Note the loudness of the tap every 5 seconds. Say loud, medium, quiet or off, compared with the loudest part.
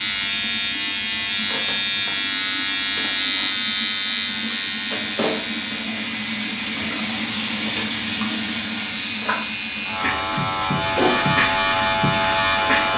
medium, loud, medium.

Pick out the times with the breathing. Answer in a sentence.
You can't hear the breathing here.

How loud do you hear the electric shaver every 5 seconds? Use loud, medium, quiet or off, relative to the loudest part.
loud, medium, loud.